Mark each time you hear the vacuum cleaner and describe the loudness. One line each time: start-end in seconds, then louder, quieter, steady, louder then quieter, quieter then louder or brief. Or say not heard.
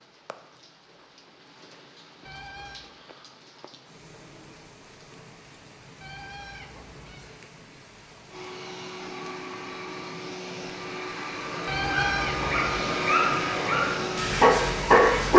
8.2-15.1 louder.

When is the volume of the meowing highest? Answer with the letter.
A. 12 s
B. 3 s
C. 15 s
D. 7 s
A.